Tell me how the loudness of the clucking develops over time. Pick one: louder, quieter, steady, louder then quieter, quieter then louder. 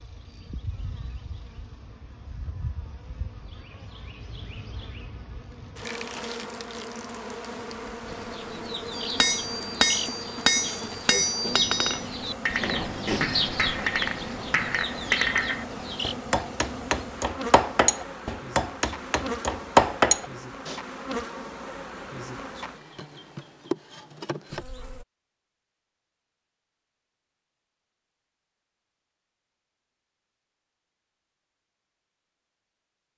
louder then quieter.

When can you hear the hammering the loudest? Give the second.
20 s.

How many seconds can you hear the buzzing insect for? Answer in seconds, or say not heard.
25 s.